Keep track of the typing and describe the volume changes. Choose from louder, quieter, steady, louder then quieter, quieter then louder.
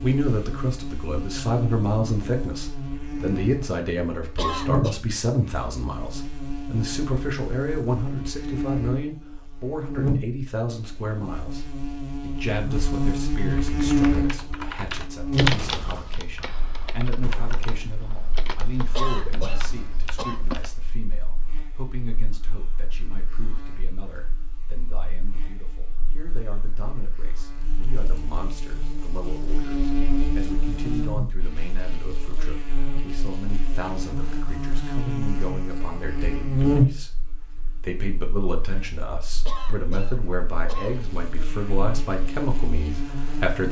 quieter.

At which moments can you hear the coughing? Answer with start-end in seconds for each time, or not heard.
4.3-5.0, 18.9-20.4, 39.5-41.1.